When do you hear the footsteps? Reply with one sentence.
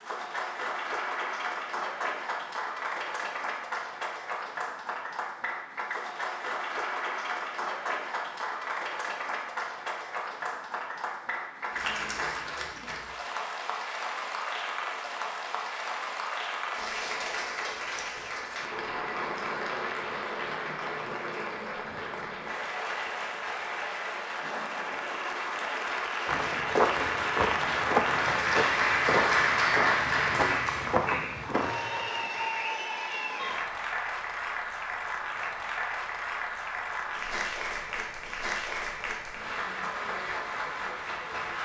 You can hear the footsteps from 26.2 to 31.8 s.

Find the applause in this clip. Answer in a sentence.
The applause can be heard from 0.0 to 41.6 s.